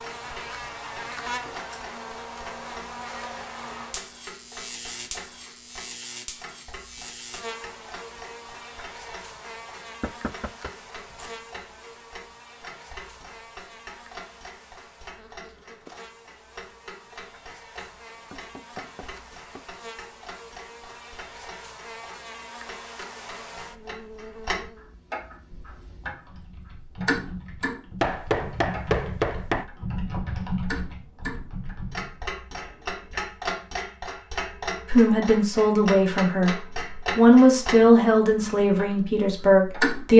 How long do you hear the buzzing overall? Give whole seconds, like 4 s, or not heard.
25 s.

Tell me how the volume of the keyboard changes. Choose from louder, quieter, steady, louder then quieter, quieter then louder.
louder then quieter.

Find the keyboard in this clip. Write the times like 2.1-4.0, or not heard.
25.5-33.3.